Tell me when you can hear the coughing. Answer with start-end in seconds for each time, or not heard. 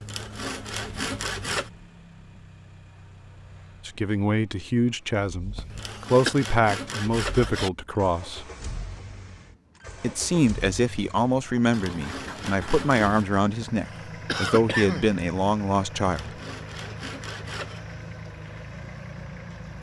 5.5-6.3, 13.6-15.1.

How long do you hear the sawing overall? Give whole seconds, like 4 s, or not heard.
7 s.